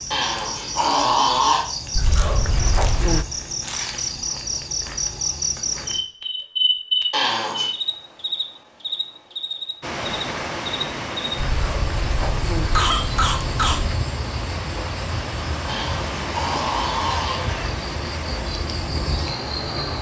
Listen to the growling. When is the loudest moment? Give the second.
1 s.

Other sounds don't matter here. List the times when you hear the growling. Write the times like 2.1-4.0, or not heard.
0.1-1.6, 7.1-7.7, 15.7-17.7.